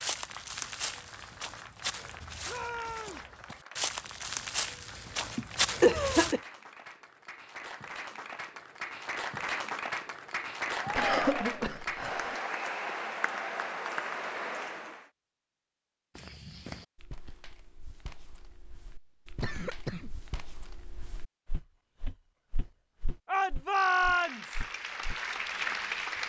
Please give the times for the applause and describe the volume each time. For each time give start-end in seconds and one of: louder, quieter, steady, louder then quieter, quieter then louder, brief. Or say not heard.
0.1-15.1 louder
24.0-26.2 brief.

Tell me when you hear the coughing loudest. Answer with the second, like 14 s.
6 s.